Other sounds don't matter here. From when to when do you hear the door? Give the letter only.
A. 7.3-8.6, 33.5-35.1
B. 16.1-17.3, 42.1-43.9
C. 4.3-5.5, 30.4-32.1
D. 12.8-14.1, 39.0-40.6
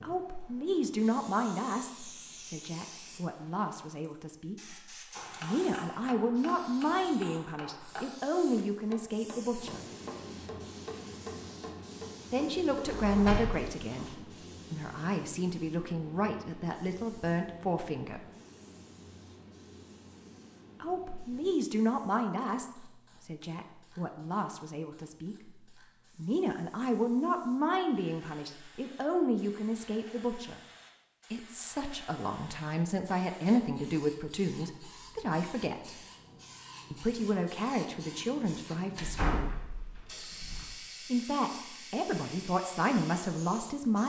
D.